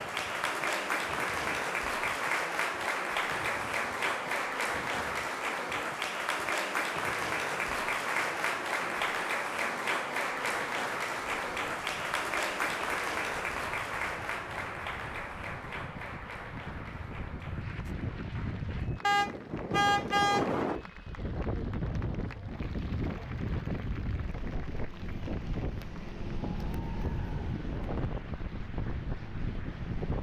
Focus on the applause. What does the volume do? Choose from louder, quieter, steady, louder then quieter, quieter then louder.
quieter.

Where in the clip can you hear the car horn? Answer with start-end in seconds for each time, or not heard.
19.0-20.5.